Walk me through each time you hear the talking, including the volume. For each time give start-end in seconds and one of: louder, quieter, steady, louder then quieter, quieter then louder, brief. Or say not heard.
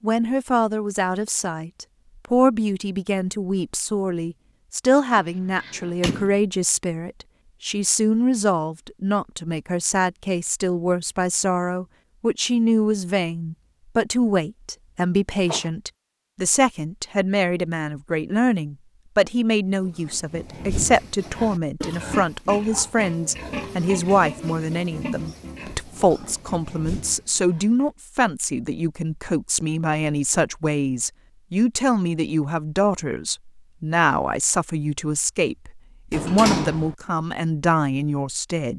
0.0-38.7 steady.